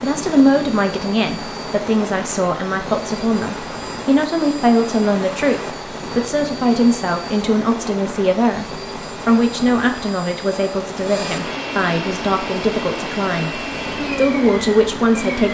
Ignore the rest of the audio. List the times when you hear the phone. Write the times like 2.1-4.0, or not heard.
not heard.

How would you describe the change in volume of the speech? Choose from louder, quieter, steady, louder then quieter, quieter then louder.
steady.